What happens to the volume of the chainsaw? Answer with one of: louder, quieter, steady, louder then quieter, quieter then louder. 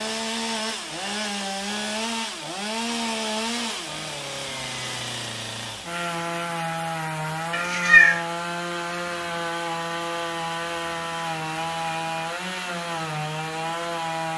steady.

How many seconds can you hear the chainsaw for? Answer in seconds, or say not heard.
14 s.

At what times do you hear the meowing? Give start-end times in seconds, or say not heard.
7.5-8.2.